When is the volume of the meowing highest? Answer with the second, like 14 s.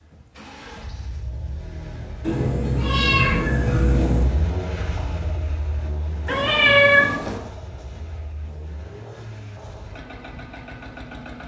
7 s.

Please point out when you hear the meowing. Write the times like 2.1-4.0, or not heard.
2.2-4.2, 6.2-7.4.